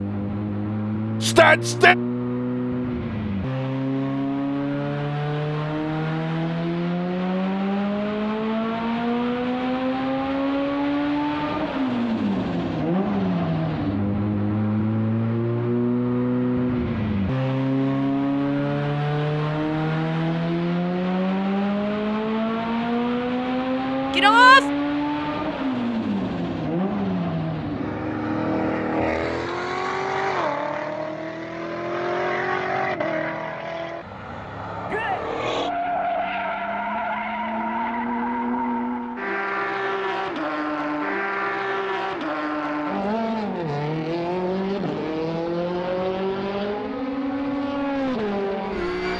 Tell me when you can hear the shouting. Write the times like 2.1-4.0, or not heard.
1.2-1.9, 24.1-24.6, 34.9-35.3.